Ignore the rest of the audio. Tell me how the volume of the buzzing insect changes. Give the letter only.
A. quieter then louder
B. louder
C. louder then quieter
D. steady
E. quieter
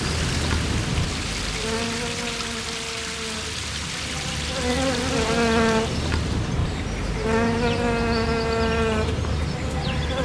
A.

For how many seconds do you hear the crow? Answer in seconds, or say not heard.
not heard.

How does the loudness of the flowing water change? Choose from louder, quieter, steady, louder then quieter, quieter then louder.
steady.